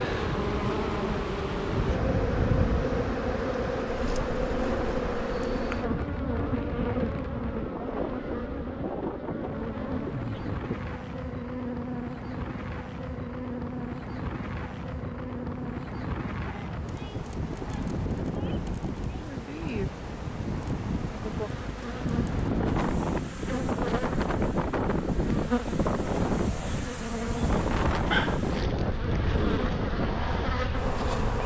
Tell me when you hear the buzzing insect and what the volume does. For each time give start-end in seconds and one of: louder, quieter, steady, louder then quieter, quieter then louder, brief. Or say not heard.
0.0-31.4 quieter then louder.